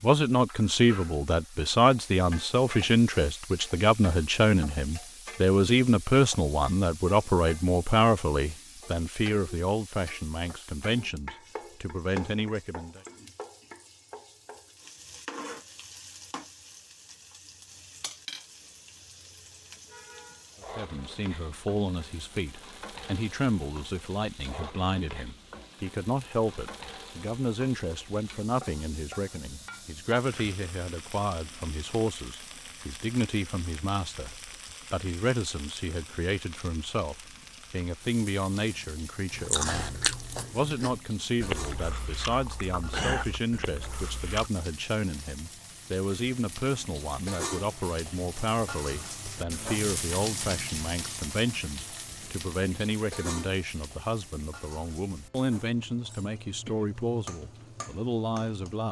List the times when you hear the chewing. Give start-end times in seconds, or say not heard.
39.3-44.5.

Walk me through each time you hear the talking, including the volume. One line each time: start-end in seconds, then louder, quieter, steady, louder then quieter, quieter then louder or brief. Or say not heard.
0.0-13.0 quieter
20.8-58.8 steady.